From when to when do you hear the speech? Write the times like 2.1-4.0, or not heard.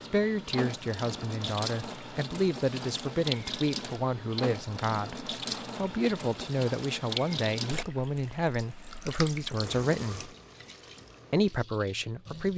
0.1-10.3, 11.3-12.5.